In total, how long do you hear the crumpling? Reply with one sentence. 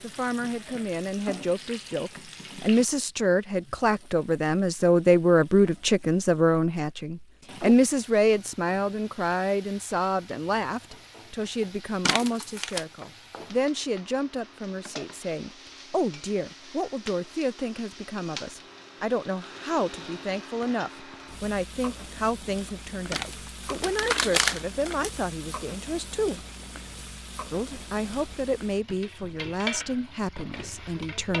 You can hear the crumpling for 3 seconds altogether.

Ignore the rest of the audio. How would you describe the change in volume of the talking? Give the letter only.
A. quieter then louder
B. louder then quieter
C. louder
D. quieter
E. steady
D.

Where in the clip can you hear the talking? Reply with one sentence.
The talking can be heard from 0.0 to 26.4 s and from 27.5 to 31.3 s.